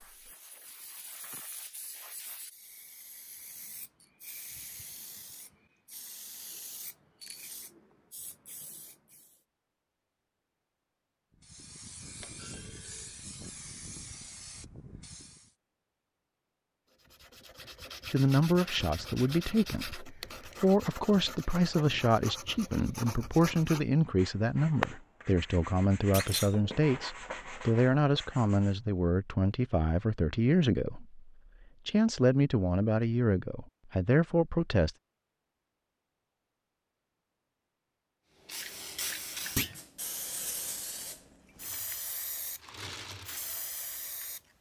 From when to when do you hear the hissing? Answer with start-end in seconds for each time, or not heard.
0.0-9.4, 11.3-15.5, 38.4-44.4.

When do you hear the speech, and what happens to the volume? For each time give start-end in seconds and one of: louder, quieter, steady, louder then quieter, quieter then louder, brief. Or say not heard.
18.1-35.0 steady.